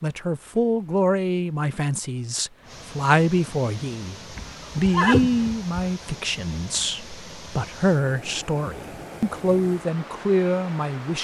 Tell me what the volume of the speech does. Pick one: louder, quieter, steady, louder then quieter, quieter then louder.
steady.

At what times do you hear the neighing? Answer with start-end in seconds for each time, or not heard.
4.3-5.8.